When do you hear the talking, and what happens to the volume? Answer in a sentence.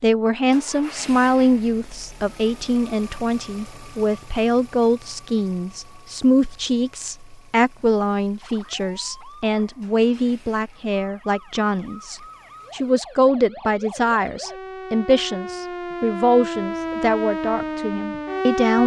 You can hear the talking from 0.0 to 18.8 s, at a steady volume.